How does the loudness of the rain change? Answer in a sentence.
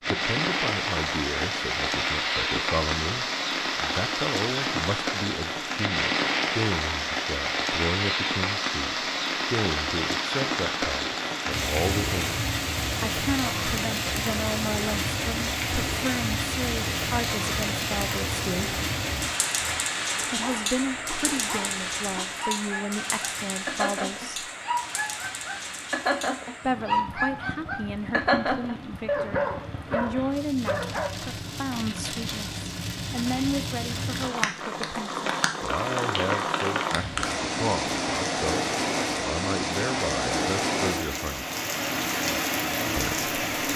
The volume of the rain goes down, then up.